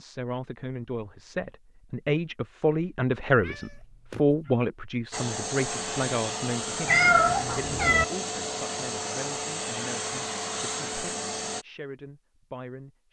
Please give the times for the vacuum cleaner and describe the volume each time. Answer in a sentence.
You can hear the vacuum cleaner from 5.1 to 11.7 s, at a steady volume.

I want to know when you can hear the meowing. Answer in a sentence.
The meowing can be heard from 3.4 to 4.5 s and from 6.8 to 8.1 s.